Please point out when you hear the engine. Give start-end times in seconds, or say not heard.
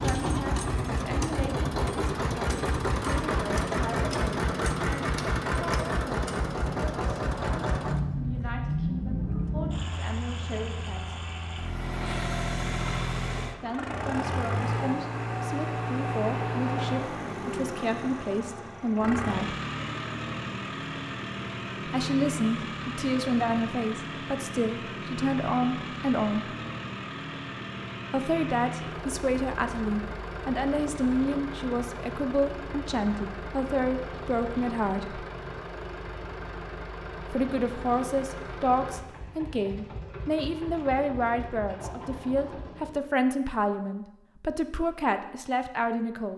0.0-43.0.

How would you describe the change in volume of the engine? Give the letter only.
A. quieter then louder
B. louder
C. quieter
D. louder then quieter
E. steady
C.